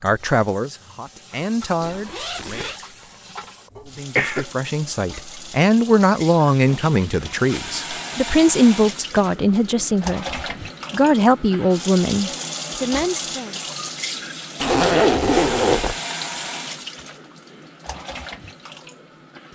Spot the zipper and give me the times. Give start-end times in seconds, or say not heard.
1.8-2.8, 6.7-8.2, 14.6-15.9.